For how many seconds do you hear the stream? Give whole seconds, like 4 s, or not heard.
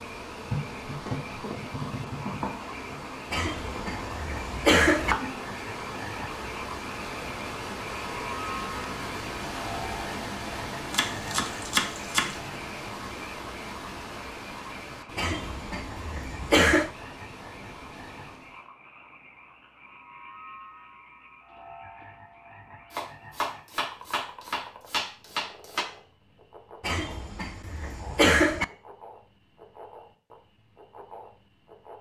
19 s.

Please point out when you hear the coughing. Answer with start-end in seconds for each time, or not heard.
3.3-5.2, 15.2-16.9, 26.8-28.6.